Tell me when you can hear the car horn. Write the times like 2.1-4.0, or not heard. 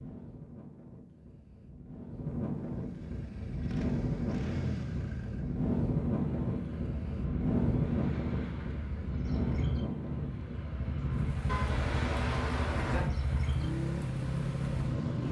11.4-13.1.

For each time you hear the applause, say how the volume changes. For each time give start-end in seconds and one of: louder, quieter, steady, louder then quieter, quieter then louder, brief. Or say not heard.
not heard.